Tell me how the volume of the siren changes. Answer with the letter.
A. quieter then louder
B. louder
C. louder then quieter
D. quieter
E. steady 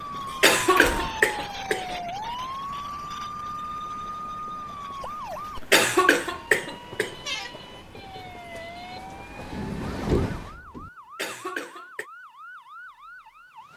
D.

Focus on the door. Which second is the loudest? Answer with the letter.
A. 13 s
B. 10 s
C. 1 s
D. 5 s
B.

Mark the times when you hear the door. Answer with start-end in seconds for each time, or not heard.
0.2-1.2, 9.5-10.9.